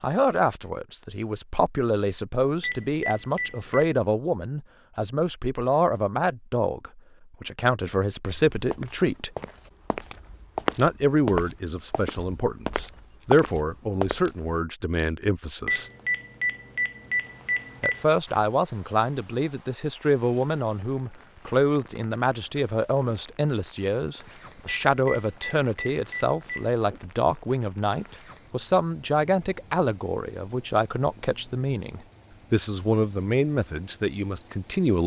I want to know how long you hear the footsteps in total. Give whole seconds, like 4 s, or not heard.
6 s.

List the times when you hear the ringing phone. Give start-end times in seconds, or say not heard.
2.6-3.9, 15.7-18.1, 24.6-26.7.